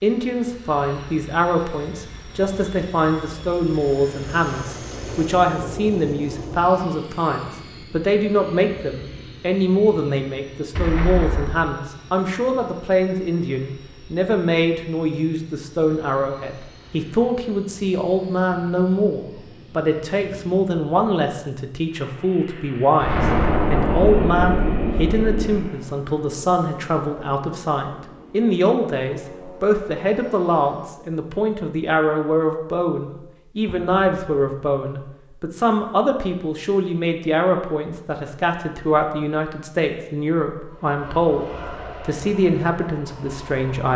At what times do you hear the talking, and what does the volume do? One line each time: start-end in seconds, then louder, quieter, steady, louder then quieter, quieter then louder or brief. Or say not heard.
0.0-43.9 steady.